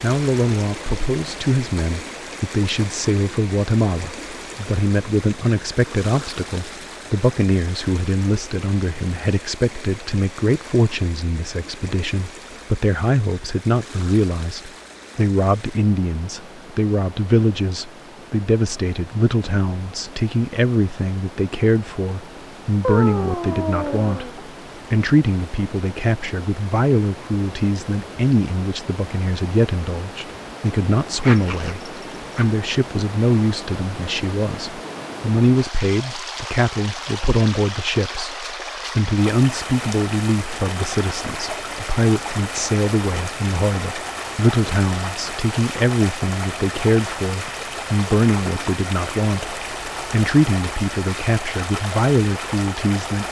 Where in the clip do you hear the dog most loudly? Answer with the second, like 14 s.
23 s.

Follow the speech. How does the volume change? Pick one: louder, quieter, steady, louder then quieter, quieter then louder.
steady.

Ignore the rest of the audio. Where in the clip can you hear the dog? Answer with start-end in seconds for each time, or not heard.
22.8-24.4, 31.1-32.5.